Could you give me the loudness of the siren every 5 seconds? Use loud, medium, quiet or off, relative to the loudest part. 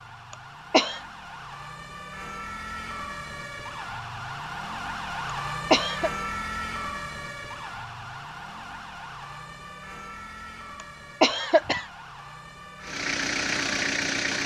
loud, loud, medium.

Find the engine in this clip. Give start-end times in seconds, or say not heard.
12.8-14.4.